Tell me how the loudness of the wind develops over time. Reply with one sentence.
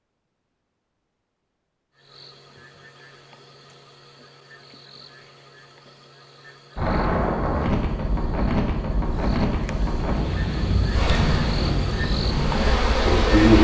The loudness of the wind stays about the same.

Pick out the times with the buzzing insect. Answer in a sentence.
You can hear the buzzing insect from 10.9 to 13.5 s.